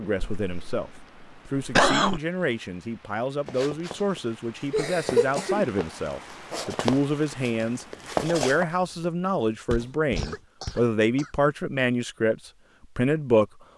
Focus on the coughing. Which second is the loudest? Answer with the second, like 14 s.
2 s.